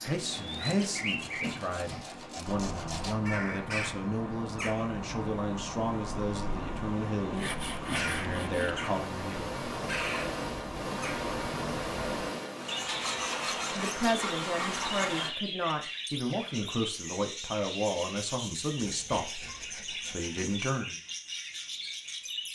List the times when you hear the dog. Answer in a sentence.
The dog can't be heard in this clip.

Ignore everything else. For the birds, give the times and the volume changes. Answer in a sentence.
You can hear the birds from 0.0 to 22.5 s, at a steady volume.